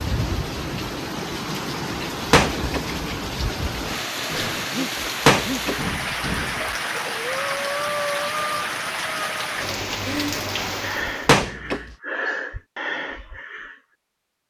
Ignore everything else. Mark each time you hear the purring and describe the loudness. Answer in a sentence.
You can't hear the purring here.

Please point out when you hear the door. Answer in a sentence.
You can hear the door from 2.3 to 2.8 s, from 5.2 to 6.8 s and from 11.2 to 11.8 s.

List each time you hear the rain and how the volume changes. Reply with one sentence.
The rain can be heard from 0.0 to 11.3 s, at a steady volume.